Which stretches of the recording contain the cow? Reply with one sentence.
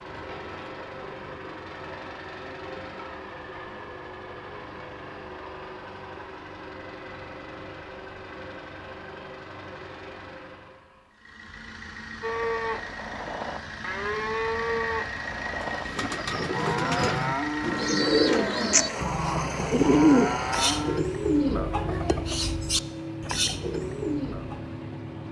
The cow can be heard from 12.2 to 21.0 s.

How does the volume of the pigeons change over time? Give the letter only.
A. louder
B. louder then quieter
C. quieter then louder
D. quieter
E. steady
B.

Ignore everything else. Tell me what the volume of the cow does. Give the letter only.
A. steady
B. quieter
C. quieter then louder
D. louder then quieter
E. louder
A.